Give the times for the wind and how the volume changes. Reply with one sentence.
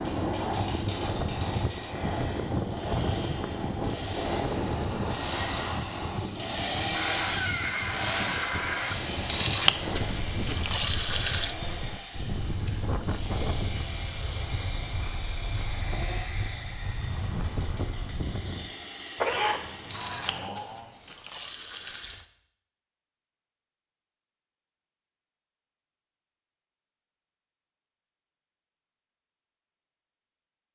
You can hear the wind from 0.0 to 18.7 s, getting quieter.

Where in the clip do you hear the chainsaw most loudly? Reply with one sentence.
The volume of the chainsaw peaks at 7 seconds.